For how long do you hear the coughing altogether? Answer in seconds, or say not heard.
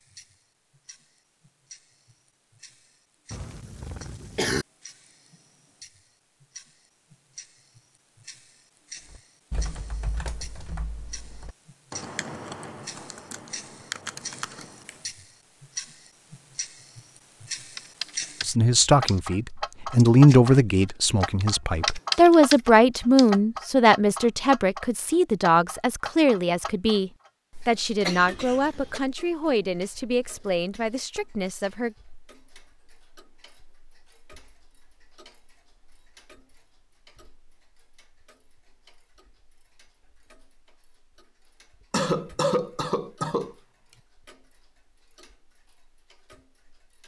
4 s.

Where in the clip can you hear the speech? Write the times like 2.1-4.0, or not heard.
18.4-31.9.